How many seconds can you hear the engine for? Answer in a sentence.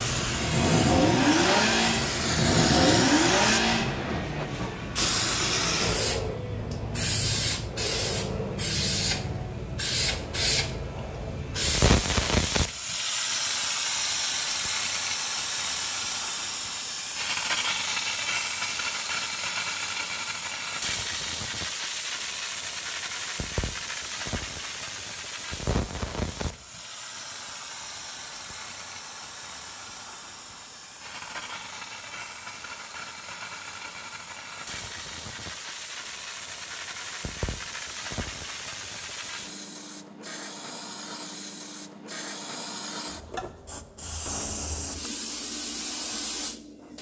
You can hear the engine for 4 seconds altogether.